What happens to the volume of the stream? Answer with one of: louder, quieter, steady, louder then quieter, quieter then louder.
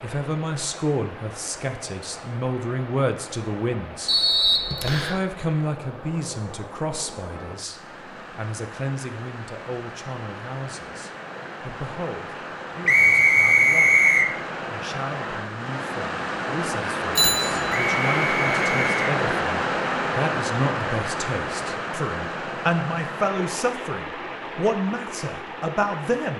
louder then quieter.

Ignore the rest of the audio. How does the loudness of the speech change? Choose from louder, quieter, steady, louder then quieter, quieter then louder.
quieter then louder.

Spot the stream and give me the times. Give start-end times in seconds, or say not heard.
0.0-26.3.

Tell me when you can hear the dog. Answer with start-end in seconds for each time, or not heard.
not heard.